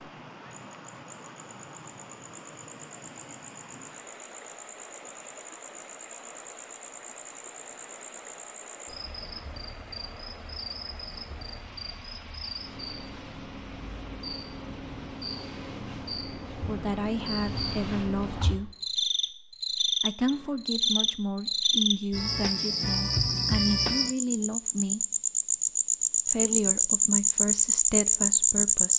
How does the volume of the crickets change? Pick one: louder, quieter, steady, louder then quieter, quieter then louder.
louder.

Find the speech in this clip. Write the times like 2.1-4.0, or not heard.
16.6-18.8, 20.0-25.1, 26.2-28.9.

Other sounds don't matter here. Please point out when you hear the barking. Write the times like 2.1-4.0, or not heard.
not heard.